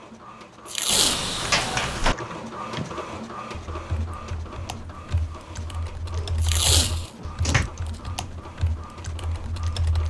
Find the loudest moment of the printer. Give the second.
3 s.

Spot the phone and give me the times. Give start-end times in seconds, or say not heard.
not heard.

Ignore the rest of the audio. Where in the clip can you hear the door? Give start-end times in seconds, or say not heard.
0.8-2.1, 6.2-7.7.